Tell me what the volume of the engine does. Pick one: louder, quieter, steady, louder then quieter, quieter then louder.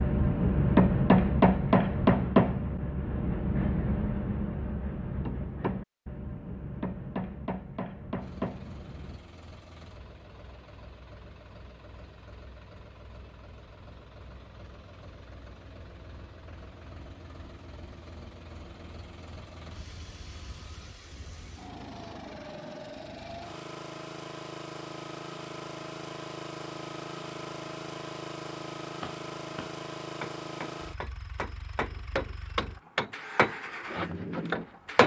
louder.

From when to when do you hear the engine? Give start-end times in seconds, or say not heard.
8.2-35.0.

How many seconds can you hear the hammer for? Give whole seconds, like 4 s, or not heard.
15 s.